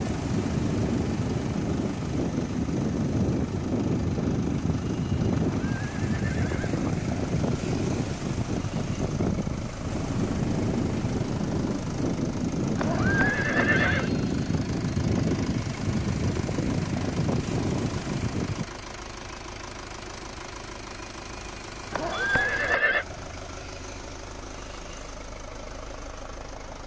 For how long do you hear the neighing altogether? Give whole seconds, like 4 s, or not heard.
4 s.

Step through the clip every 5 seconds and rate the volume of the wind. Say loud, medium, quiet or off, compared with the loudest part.
loud, loud, loud, loud, off, off.